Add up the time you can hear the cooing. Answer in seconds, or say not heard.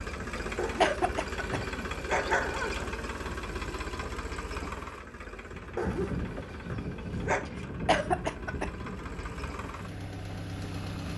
not heard.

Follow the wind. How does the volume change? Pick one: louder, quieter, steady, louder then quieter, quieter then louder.
louder then quieter.